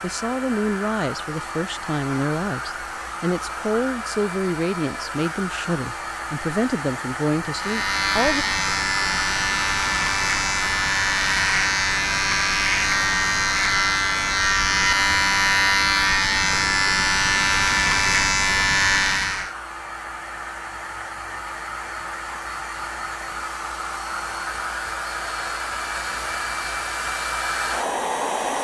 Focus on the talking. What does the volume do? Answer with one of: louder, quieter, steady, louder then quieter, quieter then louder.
steady.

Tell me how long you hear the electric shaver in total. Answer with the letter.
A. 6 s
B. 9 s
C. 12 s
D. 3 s
C.